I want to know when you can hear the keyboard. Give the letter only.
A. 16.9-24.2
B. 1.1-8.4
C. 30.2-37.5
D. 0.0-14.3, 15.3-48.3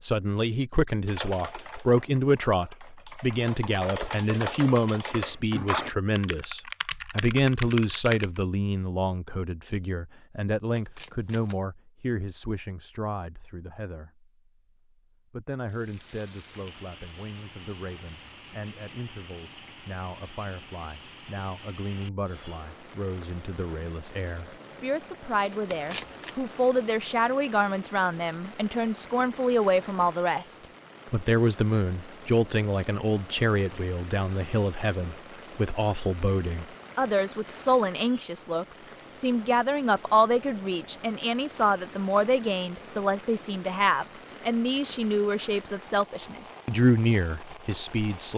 B.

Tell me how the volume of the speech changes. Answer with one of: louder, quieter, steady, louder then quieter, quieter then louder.
quieter then louder.